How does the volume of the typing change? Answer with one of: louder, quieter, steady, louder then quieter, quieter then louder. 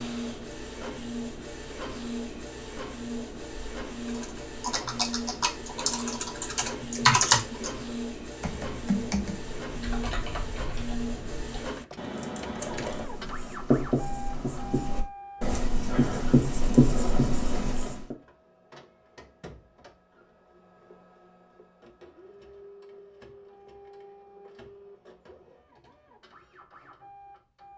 louder then quieter.